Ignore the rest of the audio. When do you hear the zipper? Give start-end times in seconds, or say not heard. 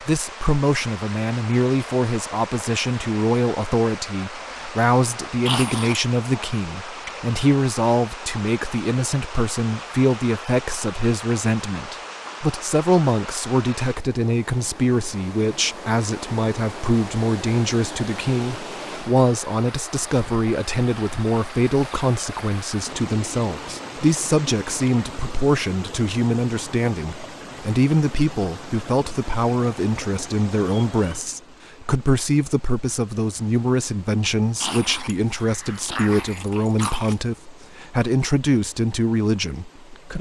not heard.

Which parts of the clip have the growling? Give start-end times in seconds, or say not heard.
5.5-6.0, 34.6-37.2.